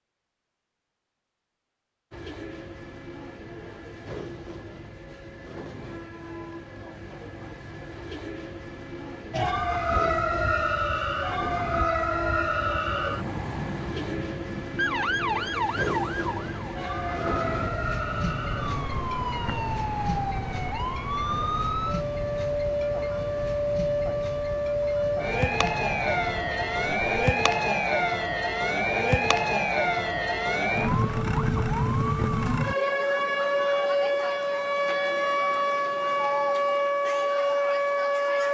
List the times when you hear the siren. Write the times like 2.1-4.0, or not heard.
9.3-38.4.